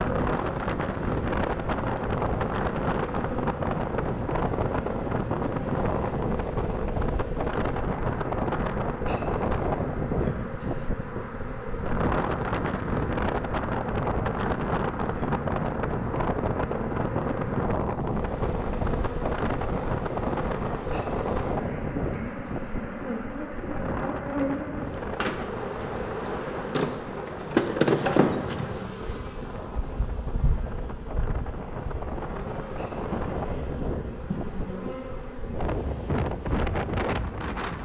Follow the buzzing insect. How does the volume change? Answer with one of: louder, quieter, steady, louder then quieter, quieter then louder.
louder then quieter.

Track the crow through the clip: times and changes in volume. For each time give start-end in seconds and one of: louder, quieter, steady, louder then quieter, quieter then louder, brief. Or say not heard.
not heard.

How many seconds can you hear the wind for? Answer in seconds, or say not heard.
38 s.